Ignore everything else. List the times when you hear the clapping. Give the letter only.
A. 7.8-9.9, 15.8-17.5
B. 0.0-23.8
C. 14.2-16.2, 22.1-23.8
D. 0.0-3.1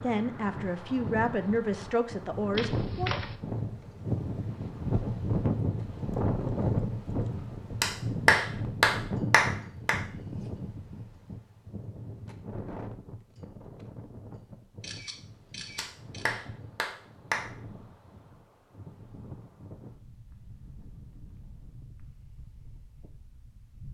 A.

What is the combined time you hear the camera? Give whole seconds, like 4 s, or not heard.
2 s.